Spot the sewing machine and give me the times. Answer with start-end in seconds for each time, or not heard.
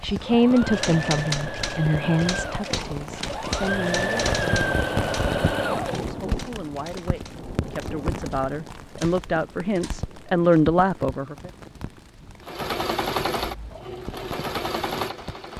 0.1-6.2, 12.4-15.5.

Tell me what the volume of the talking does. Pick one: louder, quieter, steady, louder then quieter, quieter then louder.
quieter then louder.